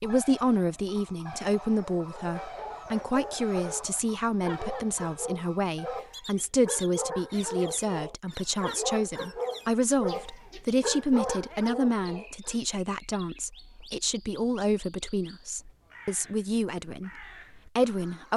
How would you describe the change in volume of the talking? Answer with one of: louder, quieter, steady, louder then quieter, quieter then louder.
steady.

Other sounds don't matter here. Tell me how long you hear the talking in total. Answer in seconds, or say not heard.
18 s.